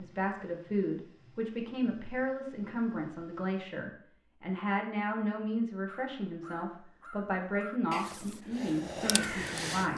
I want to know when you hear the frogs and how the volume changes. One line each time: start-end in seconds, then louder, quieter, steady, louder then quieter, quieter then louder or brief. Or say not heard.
not heard.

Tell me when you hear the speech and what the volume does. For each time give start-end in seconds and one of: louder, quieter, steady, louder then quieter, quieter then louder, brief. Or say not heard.
0.0-9.9 steady.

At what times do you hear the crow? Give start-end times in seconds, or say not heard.
5.8-9.9.